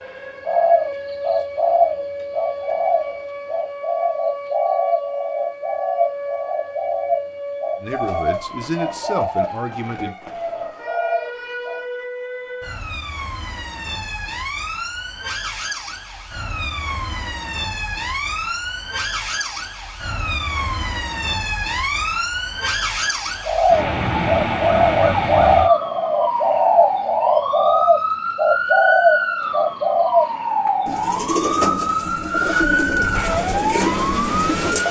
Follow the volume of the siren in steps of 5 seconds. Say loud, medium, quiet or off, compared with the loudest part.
medium, medium, medium, medium, loud, loud, loud.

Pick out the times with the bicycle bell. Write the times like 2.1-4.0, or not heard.
not heard.